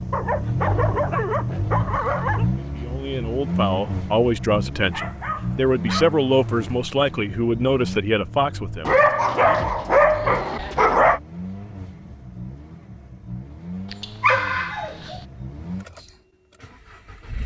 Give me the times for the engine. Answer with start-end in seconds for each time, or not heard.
0.0-17.4.